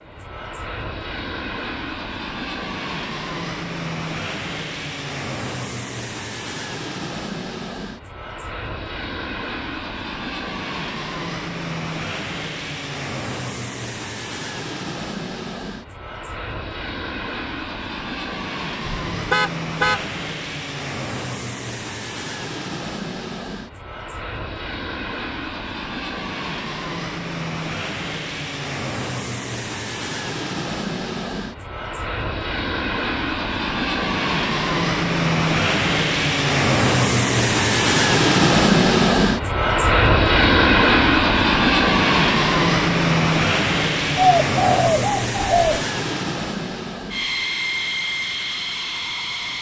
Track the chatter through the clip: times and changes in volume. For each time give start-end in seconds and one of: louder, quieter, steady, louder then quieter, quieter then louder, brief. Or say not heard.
not heard.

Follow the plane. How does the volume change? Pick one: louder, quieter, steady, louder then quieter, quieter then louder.
louder.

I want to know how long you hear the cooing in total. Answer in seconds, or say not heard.
2 s.